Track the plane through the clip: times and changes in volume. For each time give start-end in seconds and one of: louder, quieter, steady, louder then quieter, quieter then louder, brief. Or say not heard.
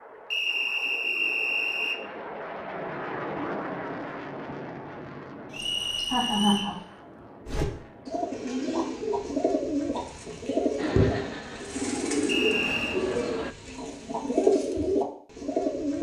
0.0-8.5 louder then quieter
10.8-13.6 brief.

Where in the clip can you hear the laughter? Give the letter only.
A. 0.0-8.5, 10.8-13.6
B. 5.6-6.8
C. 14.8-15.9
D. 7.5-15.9
B.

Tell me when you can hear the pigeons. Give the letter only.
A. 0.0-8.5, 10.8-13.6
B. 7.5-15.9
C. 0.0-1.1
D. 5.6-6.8
B.